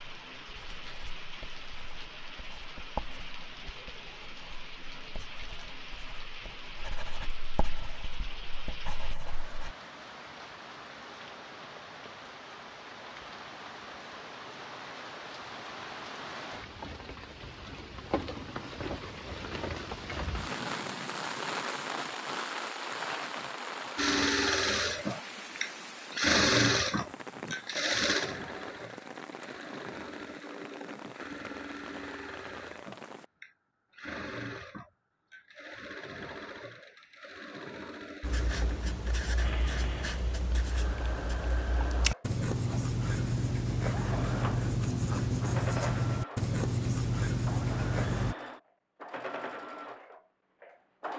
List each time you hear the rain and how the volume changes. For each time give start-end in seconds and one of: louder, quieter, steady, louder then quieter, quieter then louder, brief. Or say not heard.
0.0-33.3 louder then quieter.